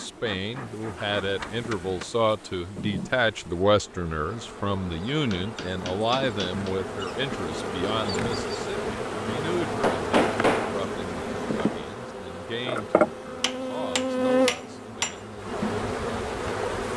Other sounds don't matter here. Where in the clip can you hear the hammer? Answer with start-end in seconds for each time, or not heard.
0.6-2.1, 5.1-6.8, 9.6-10.8, 13.4-15.2.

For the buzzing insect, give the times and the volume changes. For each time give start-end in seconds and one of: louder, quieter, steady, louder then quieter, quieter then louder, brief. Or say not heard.
0.0-16.9 louder.